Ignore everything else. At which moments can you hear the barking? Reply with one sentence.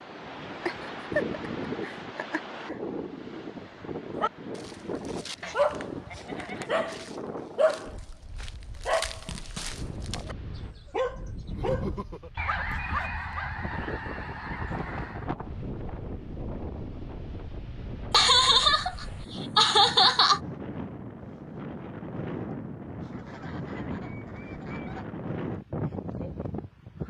You can hear the barking from 4.2 to 13.9 s.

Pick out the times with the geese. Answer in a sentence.
You can hear the geese from 5.4 to 7.0 s, from 12.3 to 15.3 s and from 23.1 to 25.1 s.